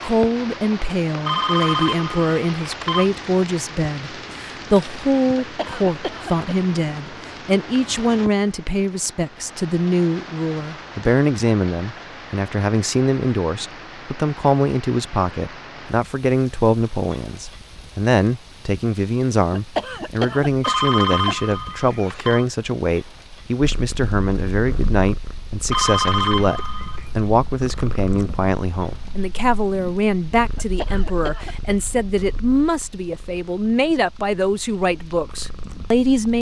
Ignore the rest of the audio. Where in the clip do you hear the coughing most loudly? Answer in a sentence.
The volume of the coughing peaks at 20 seconds.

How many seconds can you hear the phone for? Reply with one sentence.
You can hear the phone for 5 seconds altogether.